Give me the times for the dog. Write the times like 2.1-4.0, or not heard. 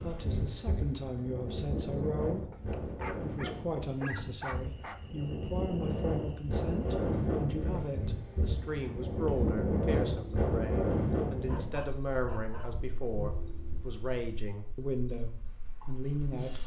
2.5-5.0, 11.4-12.7.